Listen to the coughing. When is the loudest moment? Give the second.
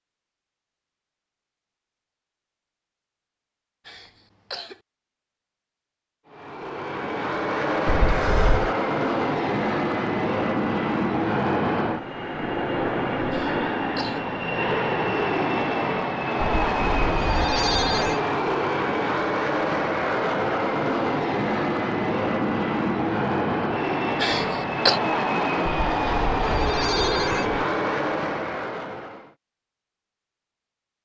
25 s.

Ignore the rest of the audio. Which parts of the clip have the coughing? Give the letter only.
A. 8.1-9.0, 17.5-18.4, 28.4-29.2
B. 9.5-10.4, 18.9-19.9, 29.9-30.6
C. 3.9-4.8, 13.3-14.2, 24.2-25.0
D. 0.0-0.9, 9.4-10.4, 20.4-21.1
C.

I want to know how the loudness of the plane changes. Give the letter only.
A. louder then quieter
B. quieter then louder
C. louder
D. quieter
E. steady
E.